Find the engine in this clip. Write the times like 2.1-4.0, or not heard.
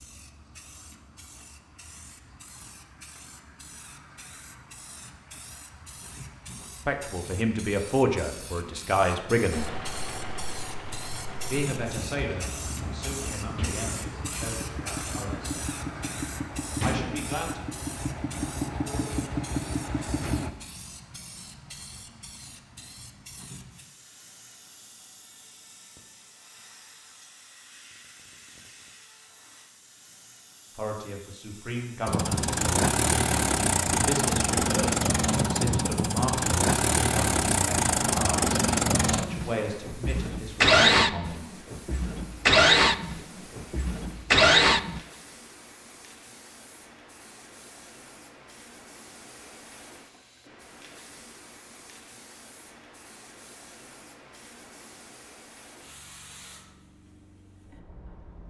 9.5-20.5, 32.0-45.0.